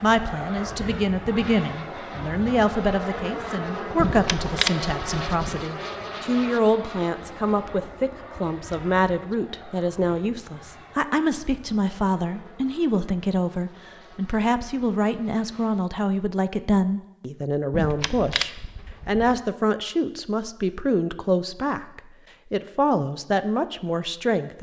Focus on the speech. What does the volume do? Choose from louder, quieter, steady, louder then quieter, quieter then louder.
steady.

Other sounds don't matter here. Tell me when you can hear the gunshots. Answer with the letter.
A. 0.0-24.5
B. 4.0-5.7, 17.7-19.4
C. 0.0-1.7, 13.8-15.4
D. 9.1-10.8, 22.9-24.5
B.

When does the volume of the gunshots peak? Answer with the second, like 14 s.
5 s.